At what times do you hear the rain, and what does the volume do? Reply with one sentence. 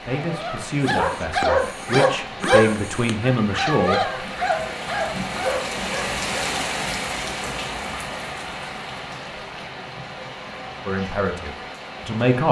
The rain can be heard from 0.0 to 12.4 s, getting louder then quieter.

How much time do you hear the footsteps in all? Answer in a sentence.
The footsteps can't be heard in this clip.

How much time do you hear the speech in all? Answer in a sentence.
The speech can be heard for 6 seconds in total.